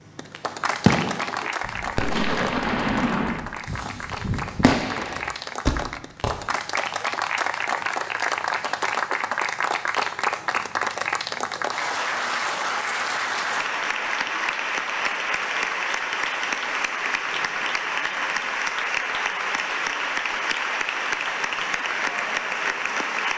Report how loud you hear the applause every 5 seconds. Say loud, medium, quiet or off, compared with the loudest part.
medium, loud, loud, loud, loud.